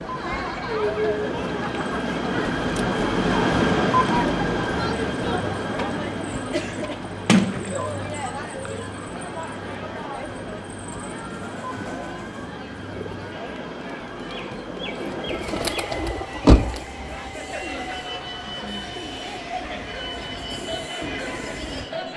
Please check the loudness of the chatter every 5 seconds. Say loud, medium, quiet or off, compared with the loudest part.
loud, loud, medium, medium, medium.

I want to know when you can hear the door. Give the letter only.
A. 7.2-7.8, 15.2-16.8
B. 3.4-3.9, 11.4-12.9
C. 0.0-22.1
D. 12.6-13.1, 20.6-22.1
A.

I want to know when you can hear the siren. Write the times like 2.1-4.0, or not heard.
not heard.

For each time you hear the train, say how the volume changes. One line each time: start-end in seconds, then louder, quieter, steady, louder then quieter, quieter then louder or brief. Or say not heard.
0.0-22.1 quieter.